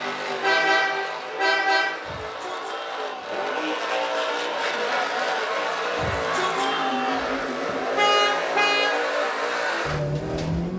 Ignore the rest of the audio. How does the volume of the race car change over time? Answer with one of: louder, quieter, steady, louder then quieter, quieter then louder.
louder.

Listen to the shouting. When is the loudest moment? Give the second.
7 s.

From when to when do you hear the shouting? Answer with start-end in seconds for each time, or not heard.
2.0-3.4, 6.0-7.3.